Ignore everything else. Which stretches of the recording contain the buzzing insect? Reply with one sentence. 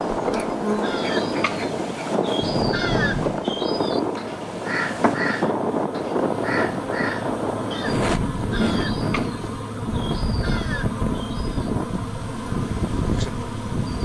The buzzing insect can be heard from 0.0 to 14.0 s.